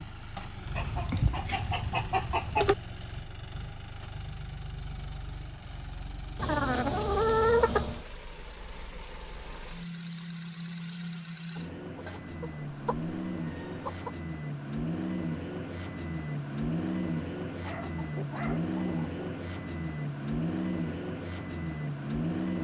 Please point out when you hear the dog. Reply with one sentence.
The dog can be heard from 17.6 to 18.7 s.